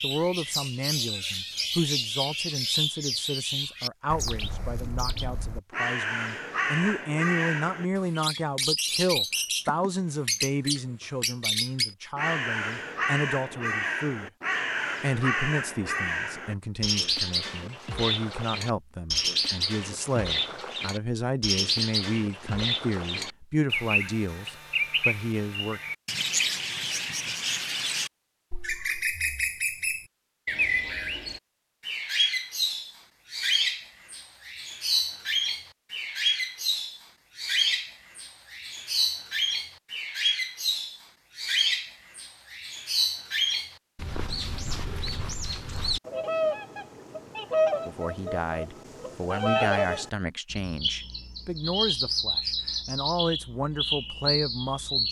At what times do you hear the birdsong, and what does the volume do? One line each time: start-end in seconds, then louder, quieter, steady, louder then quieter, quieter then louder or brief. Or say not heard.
0.0-55.0 steady.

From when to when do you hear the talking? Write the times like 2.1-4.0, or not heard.
0.0-14.3, 15.0-25.8, 47.9-55.0.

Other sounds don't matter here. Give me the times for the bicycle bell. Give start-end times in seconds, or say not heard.
not heard.